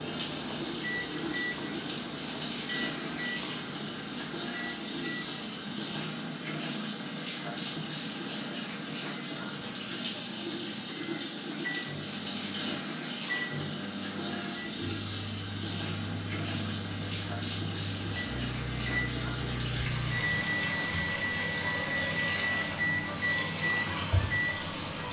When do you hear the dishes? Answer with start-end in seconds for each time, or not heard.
not heard.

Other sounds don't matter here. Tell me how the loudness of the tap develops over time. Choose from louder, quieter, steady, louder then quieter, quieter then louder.
steady.